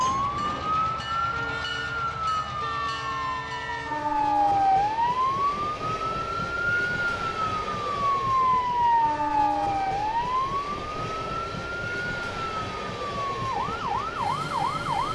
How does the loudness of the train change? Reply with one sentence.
The loudness of the train stays about the same.